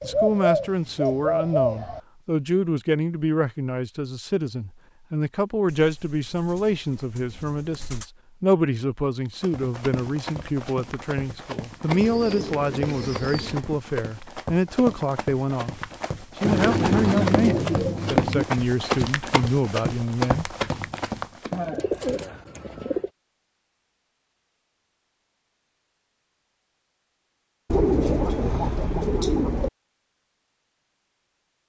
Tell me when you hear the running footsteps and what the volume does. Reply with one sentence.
The running footsteps can be heard from 9.2 to 21.7 s, getting louder.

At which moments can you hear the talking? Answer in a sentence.
The talking can be heard from 0.0 to 20.6 s.